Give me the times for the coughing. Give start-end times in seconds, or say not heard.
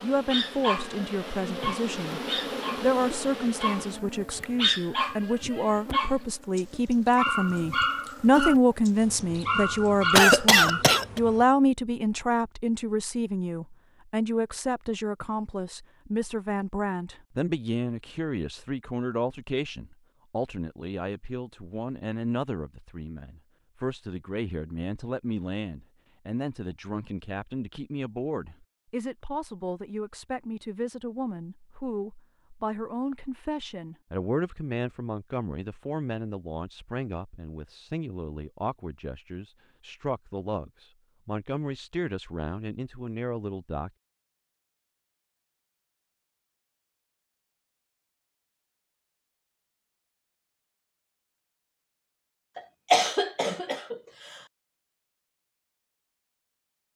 10.2-11.2, 52.5-54.0.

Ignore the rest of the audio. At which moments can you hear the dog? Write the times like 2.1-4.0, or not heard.
0.3-10.8.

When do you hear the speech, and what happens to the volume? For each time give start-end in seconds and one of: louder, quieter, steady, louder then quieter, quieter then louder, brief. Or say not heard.
0.0-2.2 brief
2.8-43.9 quieter.